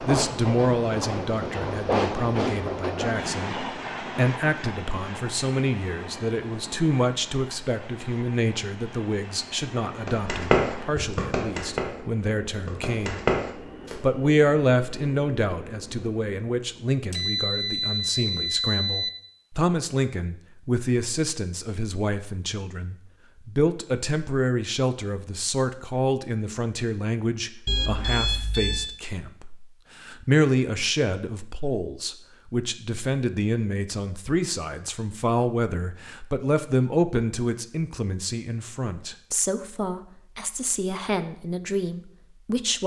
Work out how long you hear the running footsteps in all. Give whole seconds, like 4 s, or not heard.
4 s.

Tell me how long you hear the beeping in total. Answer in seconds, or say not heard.
3 s.